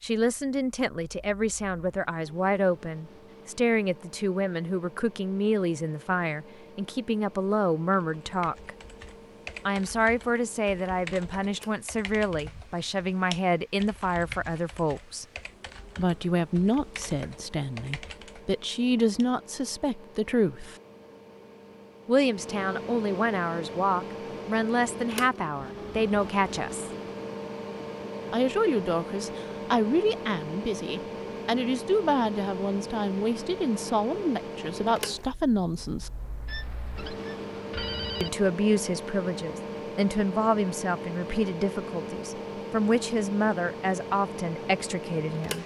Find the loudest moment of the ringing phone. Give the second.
38 s.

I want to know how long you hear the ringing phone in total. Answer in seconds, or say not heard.
2 s.